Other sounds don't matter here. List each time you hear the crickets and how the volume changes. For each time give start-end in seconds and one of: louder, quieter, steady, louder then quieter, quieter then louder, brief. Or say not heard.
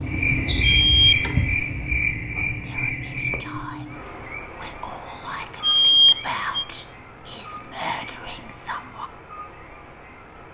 0.0-10.4 quieter.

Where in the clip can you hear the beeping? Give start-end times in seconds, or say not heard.
0.6-1.1, 5.6-6.7.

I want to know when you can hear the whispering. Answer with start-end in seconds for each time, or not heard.
2.5-9.1.